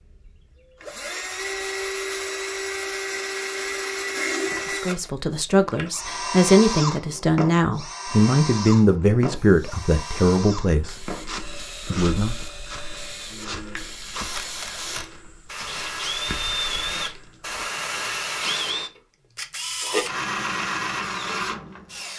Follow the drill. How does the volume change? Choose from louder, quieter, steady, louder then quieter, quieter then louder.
quieter then louder.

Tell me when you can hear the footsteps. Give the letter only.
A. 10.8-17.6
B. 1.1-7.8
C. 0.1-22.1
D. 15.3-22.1
A.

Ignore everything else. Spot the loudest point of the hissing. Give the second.
18 s.